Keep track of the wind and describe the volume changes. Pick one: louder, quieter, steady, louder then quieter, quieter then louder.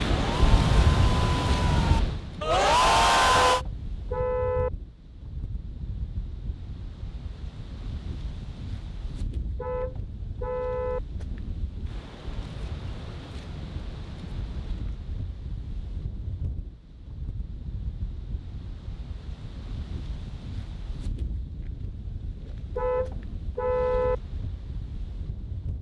quieter.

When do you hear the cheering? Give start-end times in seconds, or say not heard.
0.0-3.6.